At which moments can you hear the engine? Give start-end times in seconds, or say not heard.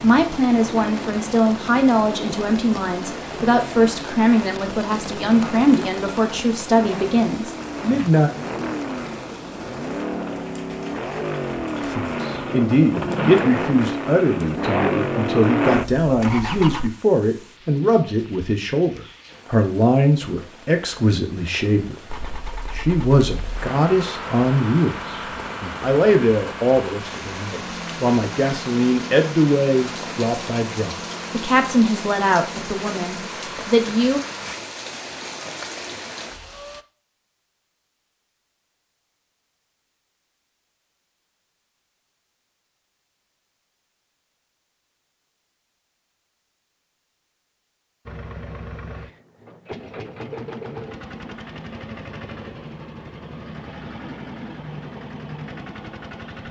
0.0-16.9, 22.1-34.5, 48.0-56.4.